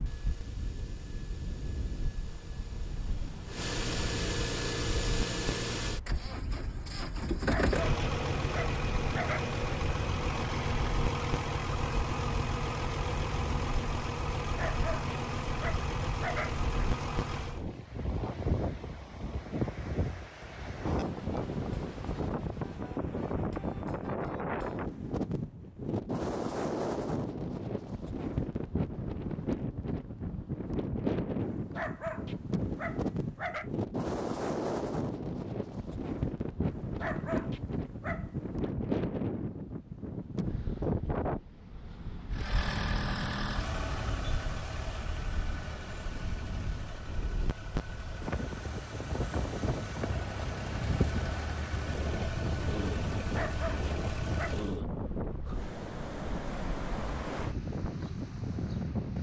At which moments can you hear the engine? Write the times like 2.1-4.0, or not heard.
0.0-17.6, 42.3-54.8.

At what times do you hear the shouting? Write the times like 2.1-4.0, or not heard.
not heard.